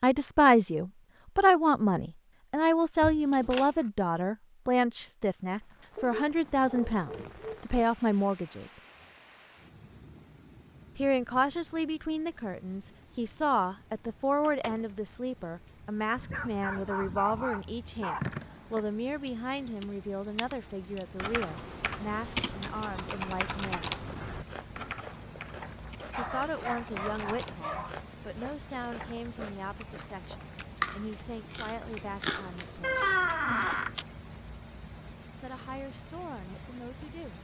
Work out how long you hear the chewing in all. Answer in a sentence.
The chewing can be heard for 10 seconds in total.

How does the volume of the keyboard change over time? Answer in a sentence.
The loudness of the keyboard goes up, then down.